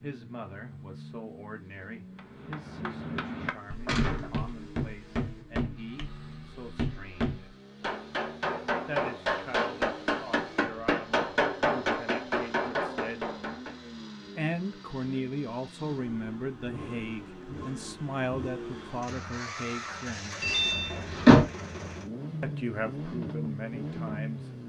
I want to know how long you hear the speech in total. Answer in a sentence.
You can hear the speech for 20 seconds altogether.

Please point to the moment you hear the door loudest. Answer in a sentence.
The volume of the door peaks at 21 seconds.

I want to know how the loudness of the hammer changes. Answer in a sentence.
The loudness of the hammer goes up.